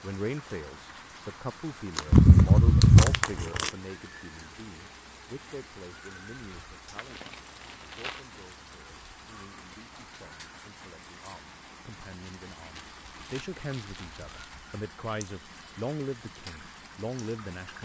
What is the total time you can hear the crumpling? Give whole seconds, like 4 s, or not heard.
5 s.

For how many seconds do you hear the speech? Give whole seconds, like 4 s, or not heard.
18 s.